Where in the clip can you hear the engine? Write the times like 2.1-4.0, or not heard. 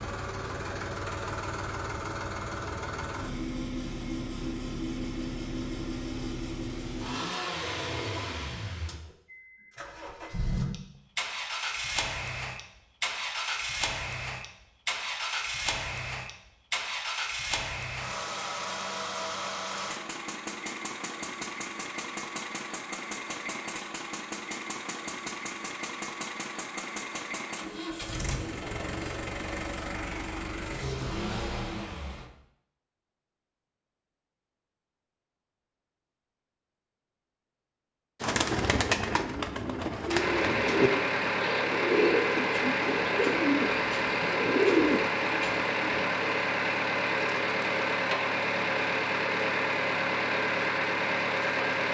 0.0-32.3, 40.1-51.8.